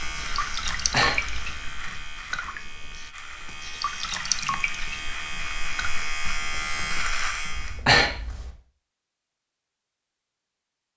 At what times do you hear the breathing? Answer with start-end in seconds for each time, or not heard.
0.8-1.4, 7.5-8.5.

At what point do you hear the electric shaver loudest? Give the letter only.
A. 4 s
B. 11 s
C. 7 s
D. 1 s
C.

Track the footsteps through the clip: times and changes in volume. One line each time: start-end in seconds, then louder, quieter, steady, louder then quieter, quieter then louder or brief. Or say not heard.
not heard.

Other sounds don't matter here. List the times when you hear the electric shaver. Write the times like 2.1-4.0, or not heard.
0.0-7.8.